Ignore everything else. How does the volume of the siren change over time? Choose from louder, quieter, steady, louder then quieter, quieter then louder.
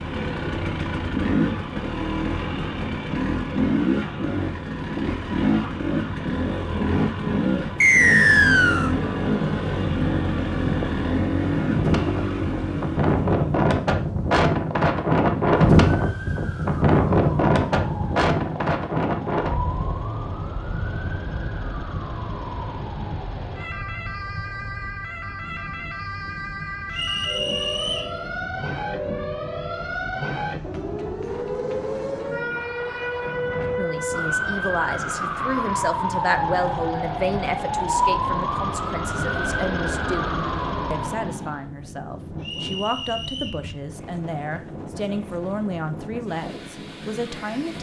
louder.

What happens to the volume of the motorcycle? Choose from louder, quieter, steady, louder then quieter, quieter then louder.
steady.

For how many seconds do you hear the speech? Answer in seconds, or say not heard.
14 s.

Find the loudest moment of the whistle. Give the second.
8 s.